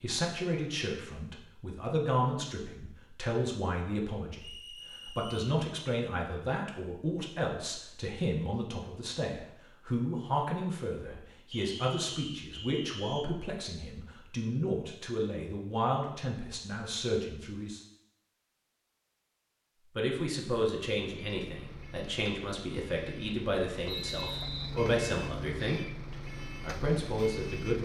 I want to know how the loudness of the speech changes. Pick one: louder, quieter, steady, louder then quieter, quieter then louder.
steady.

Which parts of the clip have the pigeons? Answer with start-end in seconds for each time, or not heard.
not heard.